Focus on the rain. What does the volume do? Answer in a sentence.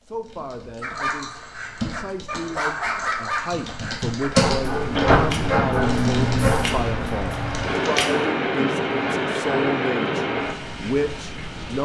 The loudness of the rain goes down.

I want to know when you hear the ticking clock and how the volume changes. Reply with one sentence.
You can't hear the ticking clock here.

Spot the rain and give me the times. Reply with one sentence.
You can hear the rain from 4.4 to 11.8 s.